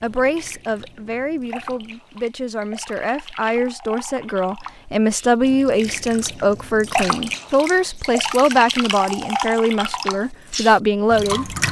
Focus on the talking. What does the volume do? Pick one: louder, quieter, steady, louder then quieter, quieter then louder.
louder.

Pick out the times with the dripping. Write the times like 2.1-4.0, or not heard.
0.0-11.6.